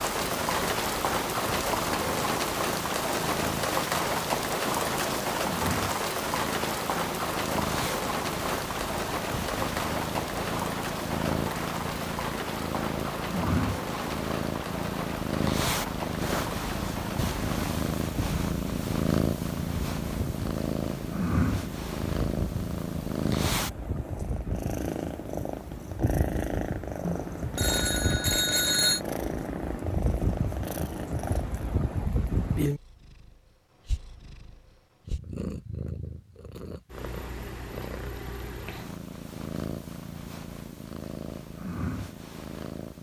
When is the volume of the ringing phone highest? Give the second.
29 s.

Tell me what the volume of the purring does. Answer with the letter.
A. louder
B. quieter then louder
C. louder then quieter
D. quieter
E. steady
C.